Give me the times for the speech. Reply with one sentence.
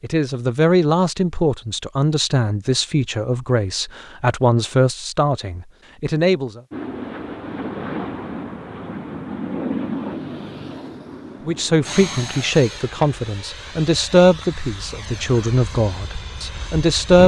The speech can be heard from 0.0 to 6.6 s and from 11.4 to 17.2 s.